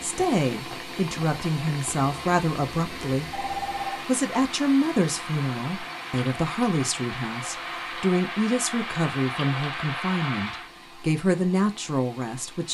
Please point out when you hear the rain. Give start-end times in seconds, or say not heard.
0.0-10.7.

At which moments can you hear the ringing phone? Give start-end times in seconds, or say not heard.
3.3-4.0.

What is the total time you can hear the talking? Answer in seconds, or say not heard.
13 s.